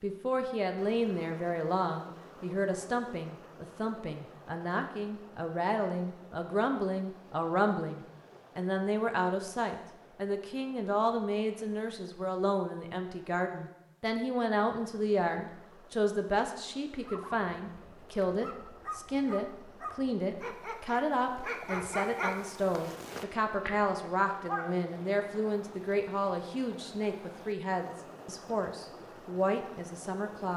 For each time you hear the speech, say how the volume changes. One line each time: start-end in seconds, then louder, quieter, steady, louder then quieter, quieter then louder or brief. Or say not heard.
0.0-30.5 steady.